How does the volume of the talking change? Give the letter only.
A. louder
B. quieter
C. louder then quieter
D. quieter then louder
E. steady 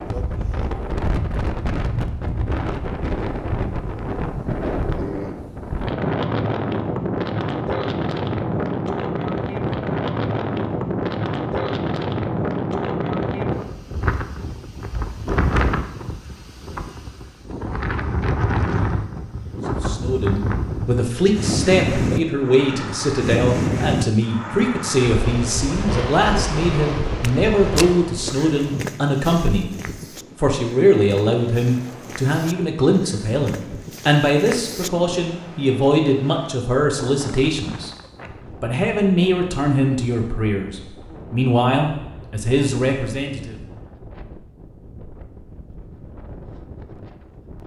E.